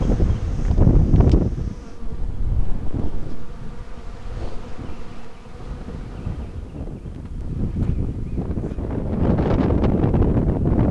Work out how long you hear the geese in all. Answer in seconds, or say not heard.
not heard.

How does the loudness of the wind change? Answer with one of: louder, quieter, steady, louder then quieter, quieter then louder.
quieter then louder.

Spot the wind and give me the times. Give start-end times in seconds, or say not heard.
0.0-10.8.